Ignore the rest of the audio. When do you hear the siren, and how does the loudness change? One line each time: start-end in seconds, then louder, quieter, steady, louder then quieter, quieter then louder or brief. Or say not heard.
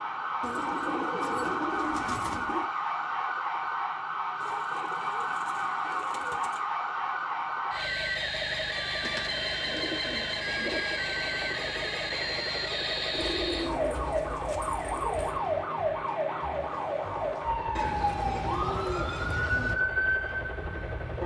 0.0-21.2 steady.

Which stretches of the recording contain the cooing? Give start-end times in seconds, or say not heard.
0.4-2.7, 4.4-6.6, 9.0-10.8, 13.2-15.4, 17.8-19.8.